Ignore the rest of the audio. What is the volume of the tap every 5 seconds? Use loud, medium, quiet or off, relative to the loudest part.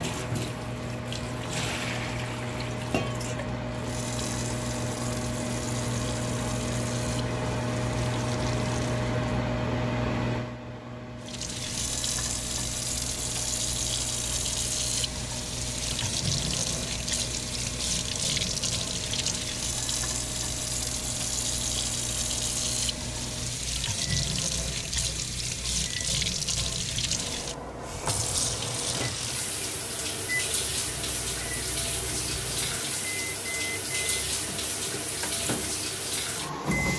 medium, medium, loud, loud, loud, loud, loud, loud.